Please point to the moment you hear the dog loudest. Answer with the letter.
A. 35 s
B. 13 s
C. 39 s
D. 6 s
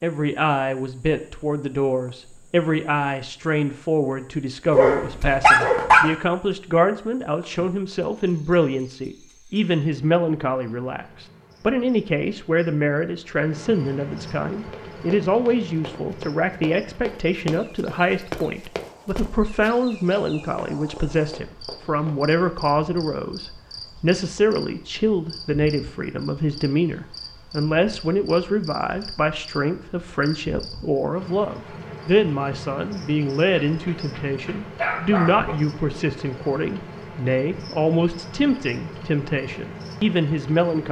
D.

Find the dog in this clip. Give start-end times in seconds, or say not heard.
4.7-6.1, 33.6-35.5.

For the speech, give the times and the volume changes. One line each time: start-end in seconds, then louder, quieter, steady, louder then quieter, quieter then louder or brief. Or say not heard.
0.0-40.8 steady.